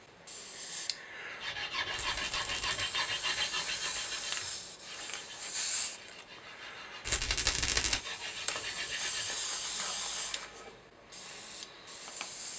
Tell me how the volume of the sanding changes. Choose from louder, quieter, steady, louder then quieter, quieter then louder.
quieter then louder.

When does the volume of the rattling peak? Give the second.
8 s.